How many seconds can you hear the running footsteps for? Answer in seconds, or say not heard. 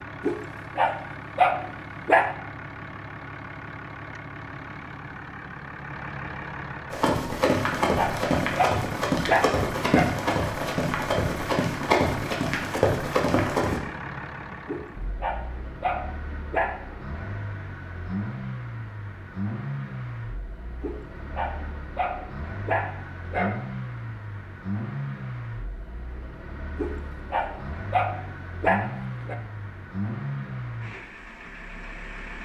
7 s.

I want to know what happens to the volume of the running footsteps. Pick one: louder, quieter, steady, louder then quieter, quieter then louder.
steady.